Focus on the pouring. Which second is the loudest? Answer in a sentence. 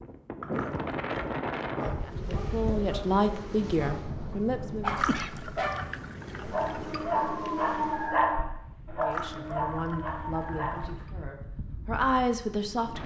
The volume of the pouring peaks at 5 seconds.